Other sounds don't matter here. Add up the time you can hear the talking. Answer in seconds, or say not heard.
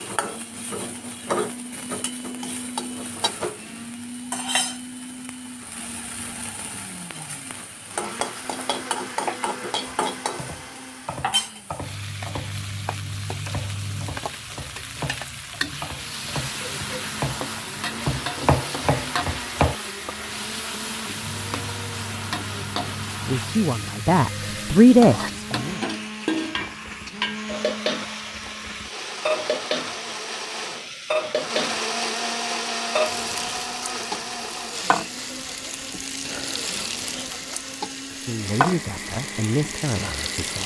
5 s.